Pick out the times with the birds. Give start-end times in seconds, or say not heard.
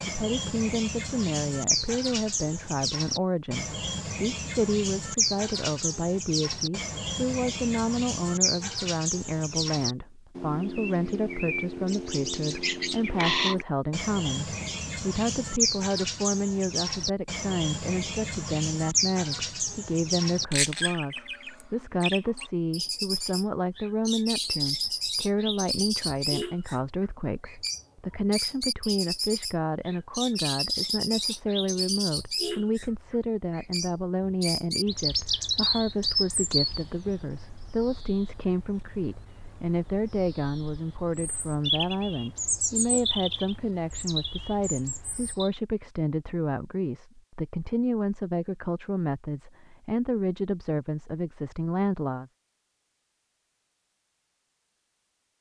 0.0-33.0, 33.5-45.5.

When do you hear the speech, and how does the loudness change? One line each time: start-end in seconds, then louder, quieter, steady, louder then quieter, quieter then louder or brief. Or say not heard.
0.1-52.3 steady.